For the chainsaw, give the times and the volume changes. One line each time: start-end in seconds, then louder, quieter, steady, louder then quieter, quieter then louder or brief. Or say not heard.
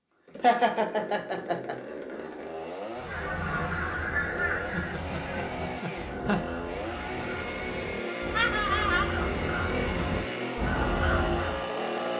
0.2-12.1 louder.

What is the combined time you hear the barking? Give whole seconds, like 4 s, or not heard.
not heard.